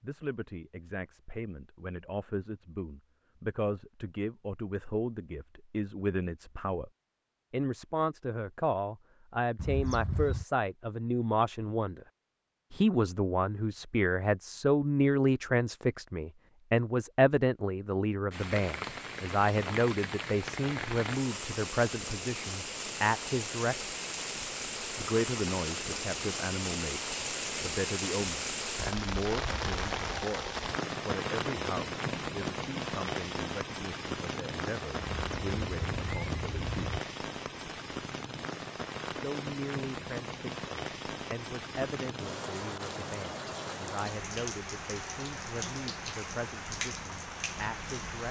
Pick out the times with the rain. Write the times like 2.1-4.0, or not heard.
18.3-48.2.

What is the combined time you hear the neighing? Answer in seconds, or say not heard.
3 s.